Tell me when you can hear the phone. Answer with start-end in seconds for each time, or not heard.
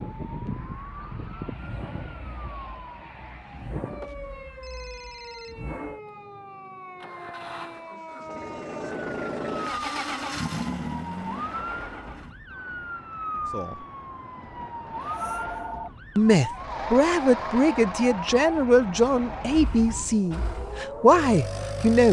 4.0-5.5, 15.0-15.9.